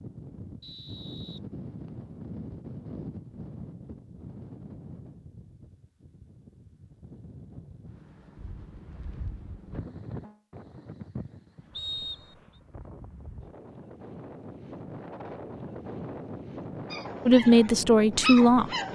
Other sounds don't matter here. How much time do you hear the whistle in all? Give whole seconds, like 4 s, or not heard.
2 s.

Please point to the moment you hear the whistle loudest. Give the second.
12 s.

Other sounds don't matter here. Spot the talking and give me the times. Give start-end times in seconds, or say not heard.
17.2-18.7.